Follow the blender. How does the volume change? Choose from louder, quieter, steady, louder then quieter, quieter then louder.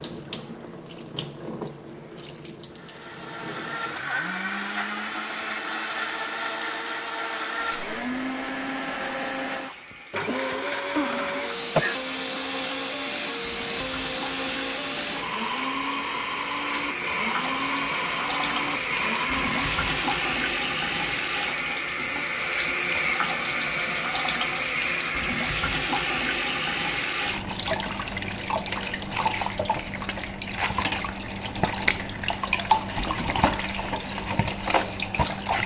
steady.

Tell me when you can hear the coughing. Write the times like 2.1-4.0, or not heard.
9.9-12.0.